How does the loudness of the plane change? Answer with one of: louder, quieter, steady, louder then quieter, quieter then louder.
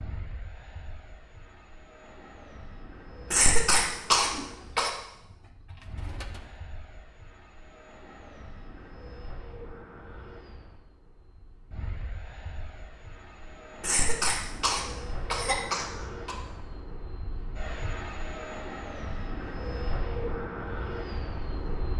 louder.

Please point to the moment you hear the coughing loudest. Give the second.
4 s.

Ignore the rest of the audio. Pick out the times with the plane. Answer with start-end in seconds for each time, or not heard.
0.0-21.9.